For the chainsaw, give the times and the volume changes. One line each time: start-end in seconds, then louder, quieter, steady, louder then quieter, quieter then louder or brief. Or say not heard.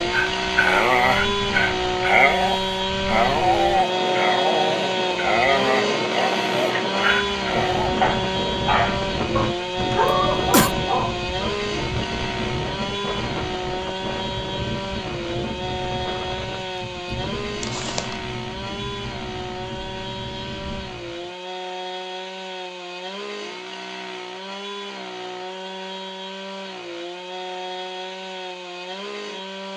0.0-29.7 quieter.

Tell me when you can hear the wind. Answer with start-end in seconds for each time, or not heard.
0.0-21.4.